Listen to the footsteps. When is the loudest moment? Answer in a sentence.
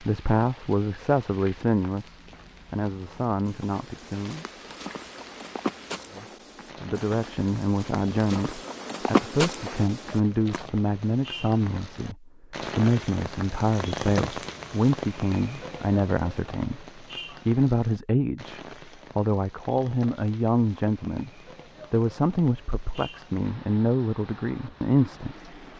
The loudest moment of the footsteps is at 9 seconds.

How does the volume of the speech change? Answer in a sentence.
The volume of the speech stays about the same.